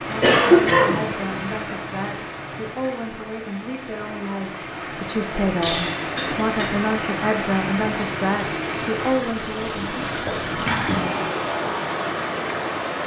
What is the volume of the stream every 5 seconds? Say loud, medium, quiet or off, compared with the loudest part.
medium, loud, loud.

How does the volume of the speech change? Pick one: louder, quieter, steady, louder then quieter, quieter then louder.
louder.